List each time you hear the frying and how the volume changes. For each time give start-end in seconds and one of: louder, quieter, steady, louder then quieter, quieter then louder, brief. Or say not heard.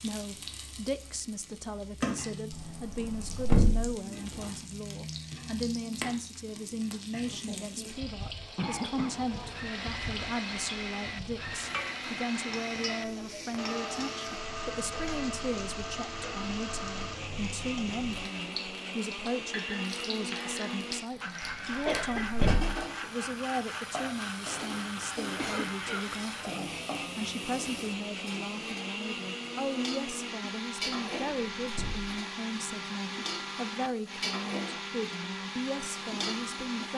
0.0-36.9 steady.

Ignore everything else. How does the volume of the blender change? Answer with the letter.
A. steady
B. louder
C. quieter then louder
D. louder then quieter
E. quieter
A.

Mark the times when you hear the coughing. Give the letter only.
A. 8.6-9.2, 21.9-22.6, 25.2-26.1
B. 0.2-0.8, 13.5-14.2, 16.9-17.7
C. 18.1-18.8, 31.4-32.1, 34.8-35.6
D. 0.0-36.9
A.